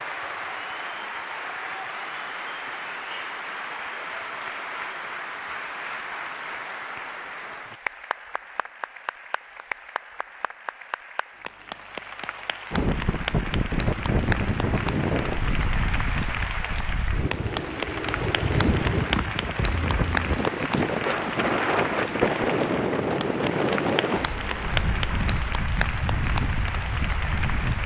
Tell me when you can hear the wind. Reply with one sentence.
The wind can be heard from 12.7 to 27.8 s.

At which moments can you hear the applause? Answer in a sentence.
The applause can be heard from 0.0 to 27.8 s.